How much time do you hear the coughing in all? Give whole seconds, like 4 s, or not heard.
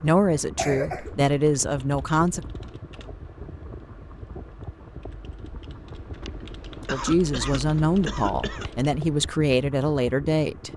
3 s.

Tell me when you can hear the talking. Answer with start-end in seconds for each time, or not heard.
0.0-2.4, 6.9-10.7.